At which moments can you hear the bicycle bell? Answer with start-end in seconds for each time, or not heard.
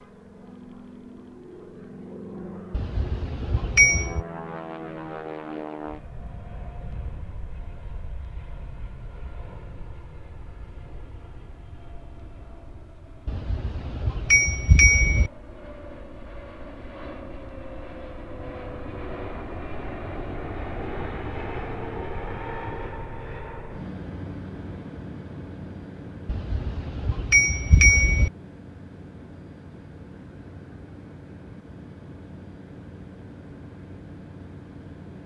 2.7-4.2, 13.2-15.3, 26.2-28.3.